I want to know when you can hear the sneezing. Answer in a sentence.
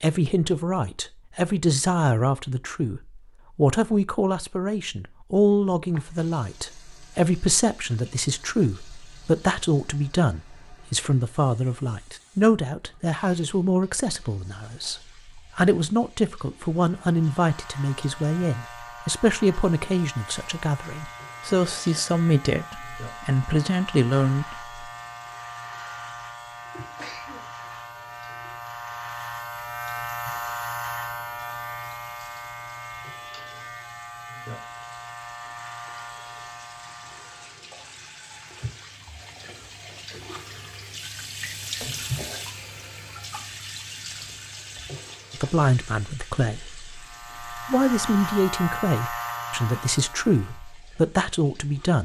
The sneezing can be heard from 26.7 to 27.4 s.